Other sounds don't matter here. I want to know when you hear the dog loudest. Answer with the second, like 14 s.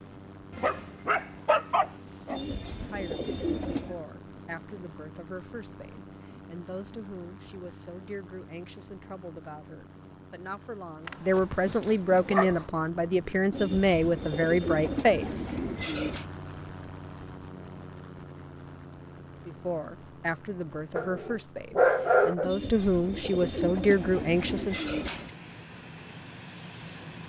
22 s.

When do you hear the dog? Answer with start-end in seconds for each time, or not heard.
0.6-2.4, 11.1-12.7, 20.9-22.5.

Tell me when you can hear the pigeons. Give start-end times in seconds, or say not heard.
2.3-4.0, 13.5-16.2, 22.4-25.4.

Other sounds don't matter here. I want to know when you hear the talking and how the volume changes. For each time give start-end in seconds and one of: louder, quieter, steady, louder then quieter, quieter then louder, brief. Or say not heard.
2.7-15.4 louder
19.4-24.8 louder.